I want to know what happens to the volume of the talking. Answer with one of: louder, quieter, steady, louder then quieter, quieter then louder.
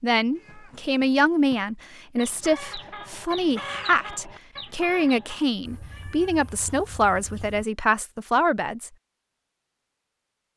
steady.